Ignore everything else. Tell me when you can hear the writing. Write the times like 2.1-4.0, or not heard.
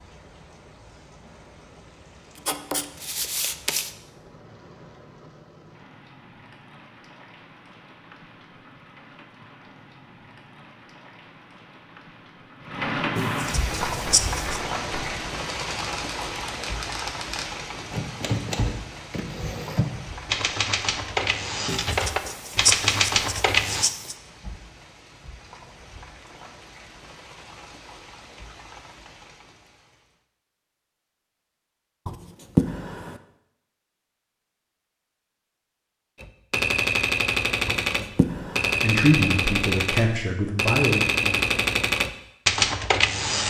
2.5-3.9, 13.2-14.6, 21.6-24.1, 32.0-33.2, 37.6-38.8.